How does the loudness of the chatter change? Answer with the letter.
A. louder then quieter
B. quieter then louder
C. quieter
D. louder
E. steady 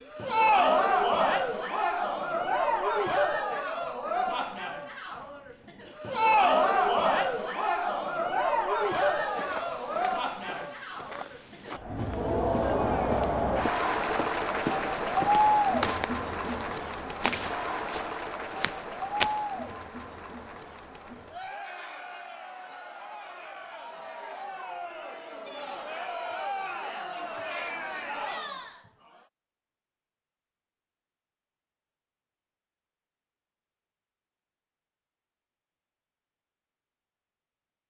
C.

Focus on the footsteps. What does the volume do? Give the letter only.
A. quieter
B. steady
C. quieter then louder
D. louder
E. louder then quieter
D.